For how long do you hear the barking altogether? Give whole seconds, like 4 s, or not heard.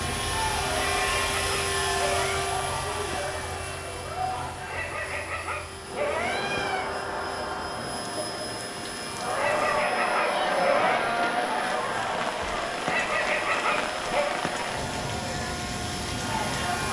7 s.